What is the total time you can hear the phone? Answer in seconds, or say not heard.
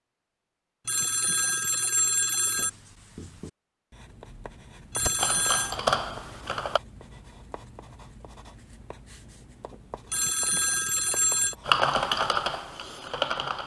4 s.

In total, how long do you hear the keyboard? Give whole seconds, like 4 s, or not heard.
4 s.